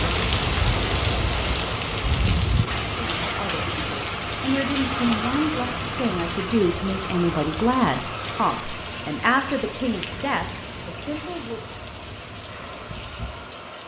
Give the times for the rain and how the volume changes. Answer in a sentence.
The rain can be heard from 0.0 to 13.8 s, getting quieter.